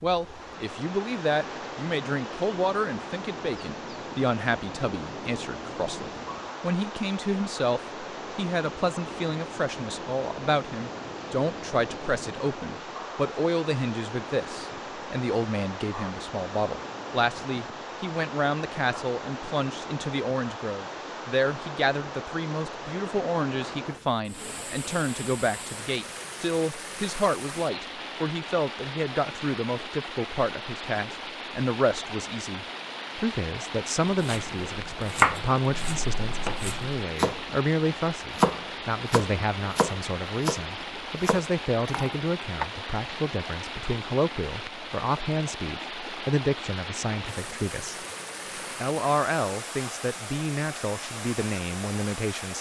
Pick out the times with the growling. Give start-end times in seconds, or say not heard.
not heard.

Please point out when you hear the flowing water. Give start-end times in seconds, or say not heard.
0.0-52.5.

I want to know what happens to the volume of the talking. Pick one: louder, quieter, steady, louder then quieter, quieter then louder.
steady.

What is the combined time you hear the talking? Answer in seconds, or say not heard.
52 s.